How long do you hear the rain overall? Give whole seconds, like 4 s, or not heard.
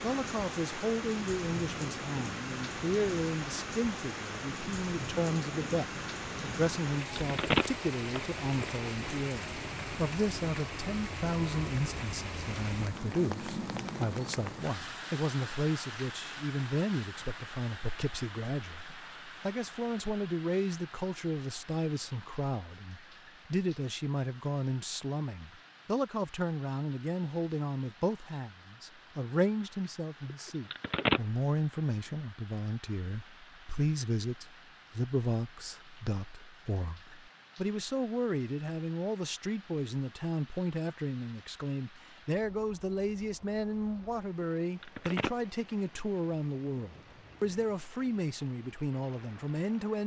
50 s.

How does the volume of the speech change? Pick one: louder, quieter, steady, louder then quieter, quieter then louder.
steady.